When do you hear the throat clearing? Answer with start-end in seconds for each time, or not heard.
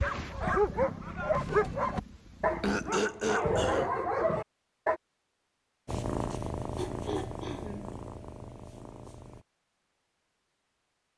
2.6-4.0, 6.3-8.0.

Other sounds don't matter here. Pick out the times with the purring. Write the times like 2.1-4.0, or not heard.
0.0-3.0, 5.8-9.4.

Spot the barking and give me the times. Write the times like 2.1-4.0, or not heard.
0.0-5.0.